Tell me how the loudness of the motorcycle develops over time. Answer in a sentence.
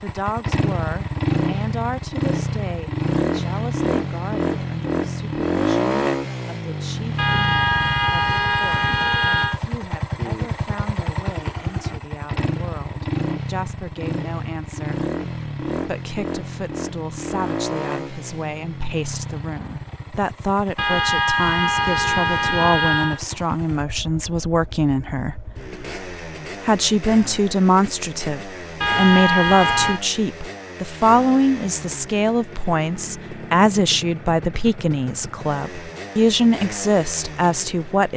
The loudness of the motorcycle goes down.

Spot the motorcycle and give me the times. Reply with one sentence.
You can hear the motorcycle from 0.0 to 38.1 s.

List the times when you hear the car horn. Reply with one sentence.
You can hear the car horn from 7.2 to 9.6 s, from 20.8 to 23.2 s and from 28.8 to 30.0 s.